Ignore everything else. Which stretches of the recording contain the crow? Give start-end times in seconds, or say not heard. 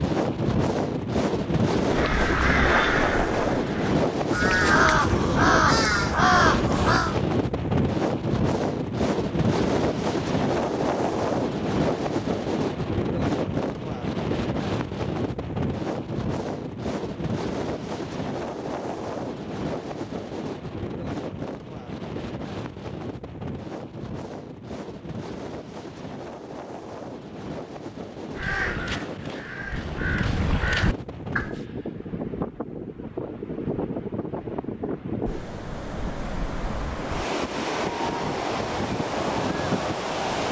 1.9-7.2, 28.4-31.6.